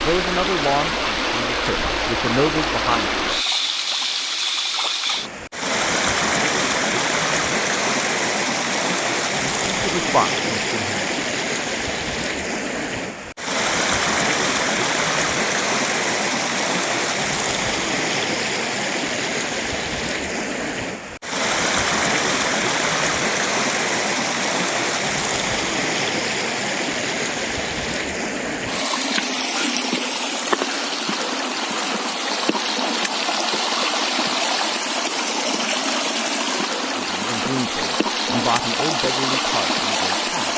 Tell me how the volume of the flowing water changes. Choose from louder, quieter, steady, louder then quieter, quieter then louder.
steady.